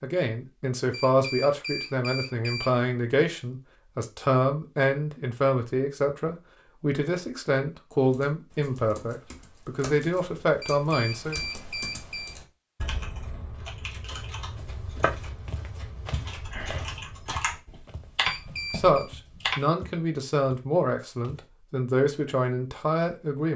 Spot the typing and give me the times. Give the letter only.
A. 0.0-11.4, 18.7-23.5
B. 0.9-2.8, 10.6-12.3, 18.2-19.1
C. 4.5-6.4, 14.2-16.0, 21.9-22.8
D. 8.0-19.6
D.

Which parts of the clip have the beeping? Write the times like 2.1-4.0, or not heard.
0.9-2.8, 10.6-12.3, 18.2-19.1.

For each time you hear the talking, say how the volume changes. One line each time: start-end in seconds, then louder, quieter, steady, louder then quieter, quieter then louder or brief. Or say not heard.
0.0-11.4 steady
18.7-23.5 steady.